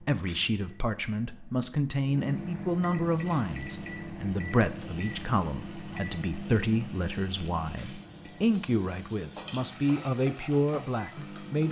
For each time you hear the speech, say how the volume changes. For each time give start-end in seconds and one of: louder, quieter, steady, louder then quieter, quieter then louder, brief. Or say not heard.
0.0-11.6 steady.